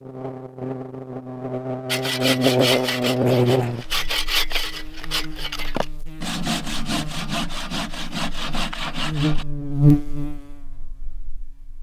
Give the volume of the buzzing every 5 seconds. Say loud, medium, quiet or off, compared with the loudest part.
loud, loud, quiet.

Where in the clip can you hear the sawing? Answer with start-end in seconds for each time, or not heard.
1.9-9.4.